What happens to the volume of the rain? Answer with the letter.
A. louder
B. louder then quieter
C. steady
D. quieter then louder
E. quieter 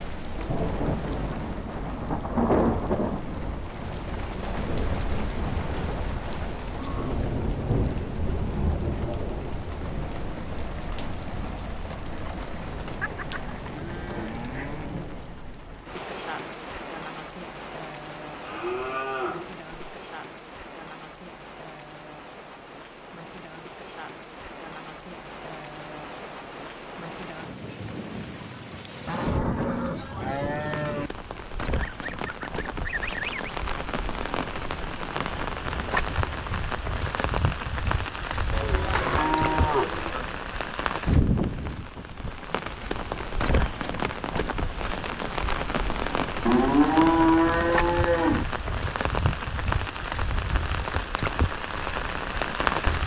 D.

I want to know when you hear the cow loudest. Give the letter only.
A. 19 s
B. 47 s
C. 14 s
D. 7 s
B.